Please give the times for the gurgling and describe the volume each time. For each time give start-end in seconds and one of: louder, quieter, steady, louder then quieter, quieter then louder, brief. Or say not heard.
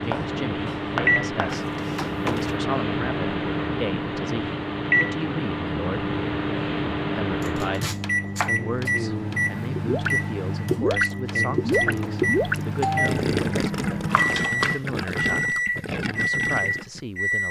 9.8-17.0 quieter.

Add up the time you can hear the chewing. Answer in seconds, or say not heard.
not heard.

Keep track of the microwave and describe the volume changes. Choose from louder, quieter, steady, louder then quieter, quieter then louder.
steady.